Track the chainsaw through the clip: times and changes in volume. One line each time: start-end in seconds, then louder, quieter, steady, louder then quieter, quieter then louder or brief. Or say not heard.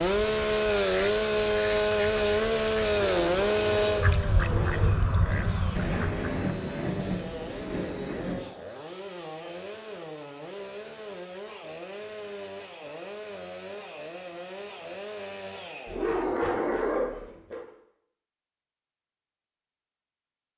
0.0-16.3 quieter.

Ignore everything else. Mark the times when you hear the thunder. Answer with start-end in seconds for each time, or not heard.
5.8-8.4.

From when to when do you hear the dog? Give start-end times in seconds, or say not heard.
3.1-5.0, 15.8-17.6.